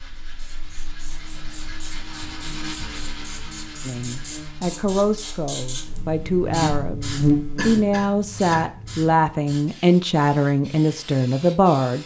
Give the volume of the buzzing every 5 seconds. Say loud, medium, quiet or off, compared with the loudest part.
quiet, loud, off.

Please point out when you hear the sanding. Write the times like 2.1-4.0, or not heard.
0.0-4.6.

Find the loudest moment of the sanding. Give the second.
3 s.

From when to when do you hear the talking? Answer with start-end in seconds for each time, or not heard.
3.9-12.0.